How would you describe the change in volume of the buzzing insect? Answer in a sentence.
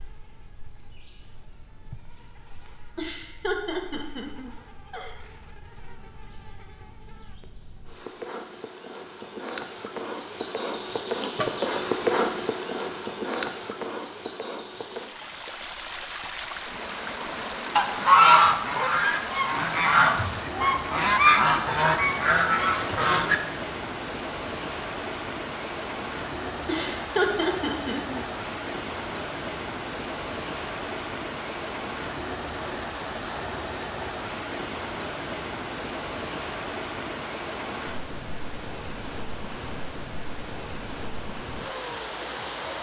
The volume of the buzzing insect goes up.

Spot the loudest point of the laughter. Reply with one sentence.
The volume of the laughter peaks at 27 seconds.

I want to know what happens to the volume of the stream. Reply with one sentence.
The volume of the stream stays about the same.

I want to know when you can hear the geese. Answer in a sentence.
You can hear the geese from 17.8 to 23.4 s.